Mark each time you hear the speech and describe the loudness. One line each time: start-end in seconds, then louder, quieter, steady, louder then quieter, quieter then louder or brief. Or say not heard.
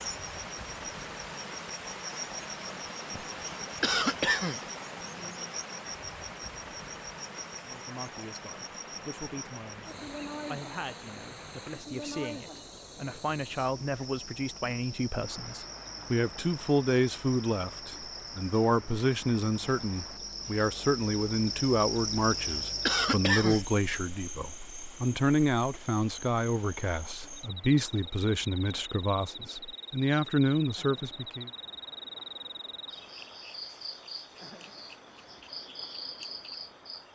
7.6-31.5 louder.